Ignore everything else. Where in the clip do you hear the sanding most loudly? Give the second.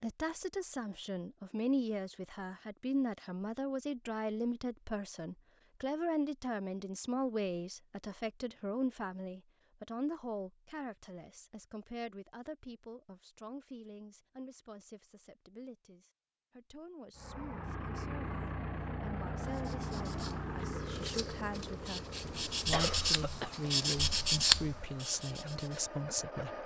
24 s.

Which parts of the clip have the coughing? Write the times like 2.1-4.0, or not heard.
22.2-23.6.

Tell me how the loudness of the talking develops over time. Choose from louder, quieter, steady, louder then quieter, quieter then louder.
quieter then louder.